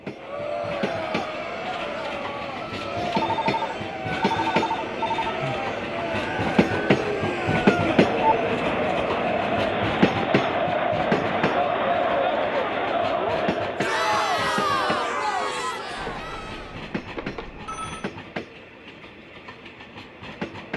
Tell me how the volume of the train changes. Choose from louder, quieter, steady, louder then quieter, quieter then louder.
louder then quieter.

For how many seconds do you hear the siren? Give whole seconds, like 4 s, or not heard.
not heard.